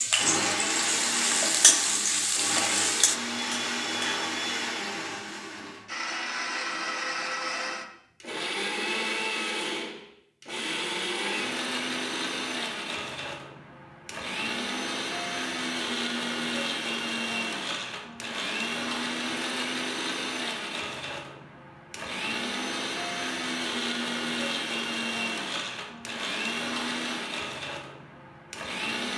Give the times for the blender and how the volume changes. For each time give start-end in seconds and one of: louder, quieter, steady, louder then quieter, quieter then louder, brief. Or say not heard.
0.0-29.1 steady.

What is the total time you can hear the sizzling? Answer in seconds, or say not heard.
4 s.